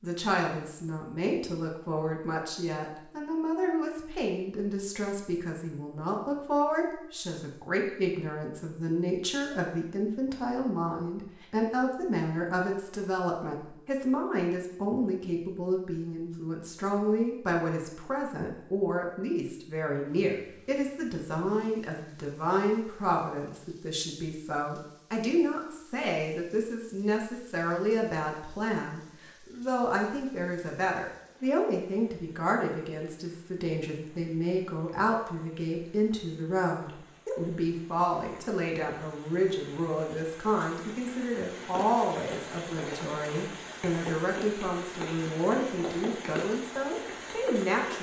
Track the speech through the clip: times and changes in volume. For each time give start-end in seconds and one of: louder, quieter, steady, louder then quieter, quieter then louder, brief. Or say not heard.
0.0-47.9 steady.